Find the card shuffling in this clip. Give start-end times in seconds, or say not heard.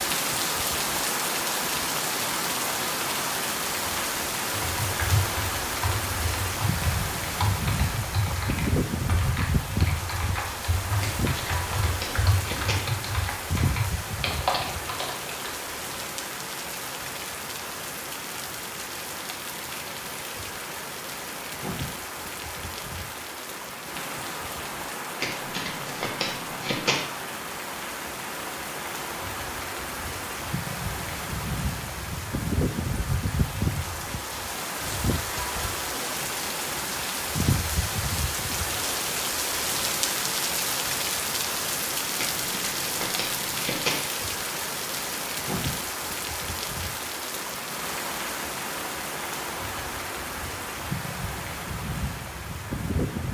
11.0-12.8, 25.2-27.0, 42.1-44.0.